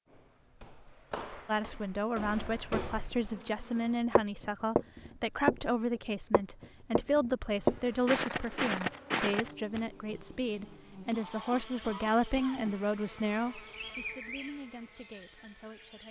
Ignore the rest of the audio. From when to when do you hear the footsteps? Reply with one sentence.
The footsteps can be heard from 0.1 to 5.6 s and from 6.3 to 9.8 s.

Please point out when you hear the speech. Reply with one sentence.
The speech can be heard from 1.4 to 16.0 s.